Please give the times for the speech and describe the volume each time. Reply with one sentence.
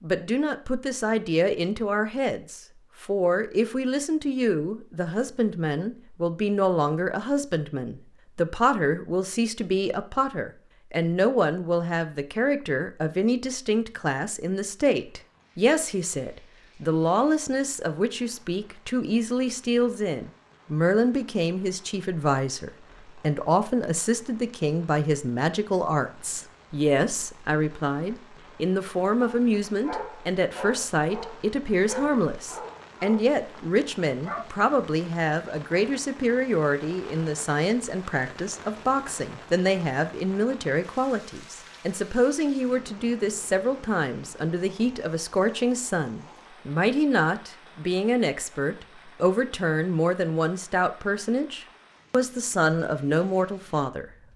You can hear the speech from 0.0 to 54.0 s, at a steady volume.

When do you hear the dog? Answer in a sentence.
The dog can be heard from 29.2 to 34.5 s.